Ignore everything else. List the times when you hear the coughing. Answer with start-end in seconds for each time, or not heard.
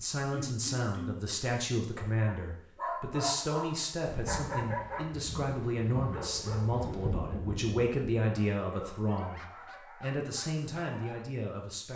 0.3-1.3.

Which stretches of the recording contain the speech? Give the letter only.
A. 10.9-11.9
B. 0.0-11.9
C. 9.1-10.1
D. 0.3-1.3
B.